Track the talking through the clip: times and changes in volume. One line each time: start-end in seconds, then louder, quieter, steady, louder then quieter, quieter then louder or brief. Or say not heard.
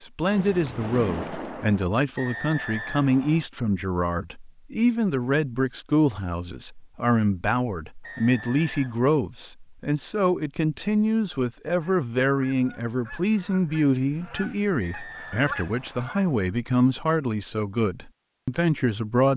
0.0-19.3 steady.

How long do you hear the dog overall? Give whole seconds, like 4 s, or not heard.
not heard.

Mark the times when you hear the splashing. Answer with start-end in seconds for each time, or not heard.
0.3-1.9.